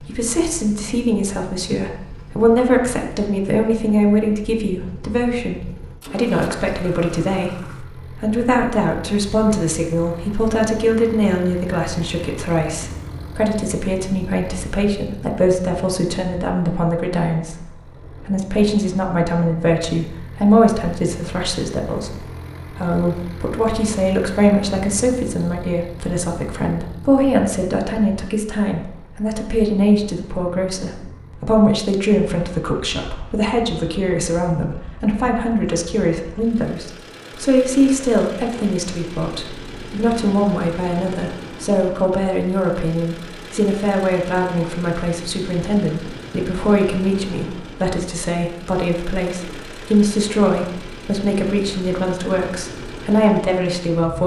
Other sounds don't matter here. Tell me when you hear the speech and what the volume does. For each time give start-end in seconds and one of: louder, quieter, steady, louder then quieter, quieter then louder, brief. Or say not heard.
0.0-54.2 steady.